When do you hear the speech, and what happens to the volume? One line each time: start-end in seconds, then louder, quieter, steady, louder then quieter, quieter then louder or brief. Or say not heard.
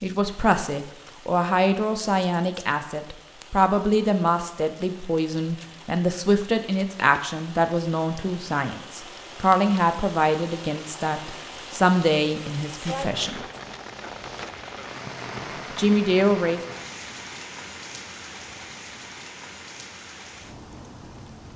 0.0-13.4 steady
15.7-16.6 brief.